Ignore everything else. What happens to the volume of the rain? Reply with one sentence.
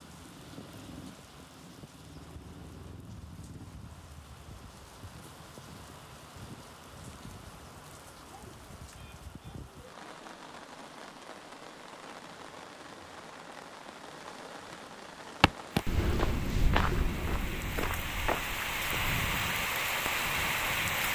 The loudness of the rain goes up.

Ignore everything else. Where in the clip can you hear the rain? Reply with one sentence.
You can hear the rain from 0.0 to 21.1 s.